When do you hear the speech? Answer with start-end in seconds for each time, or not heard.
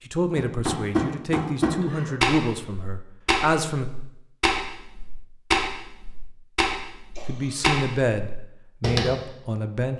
0.1-3.9, 7.2-9.9.